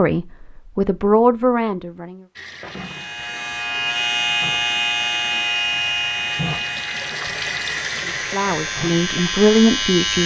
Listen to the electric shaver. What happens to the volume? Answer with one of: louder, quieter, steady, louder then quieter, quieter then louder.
quieter then louder.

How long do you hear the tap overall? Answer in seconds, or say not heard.
8 s.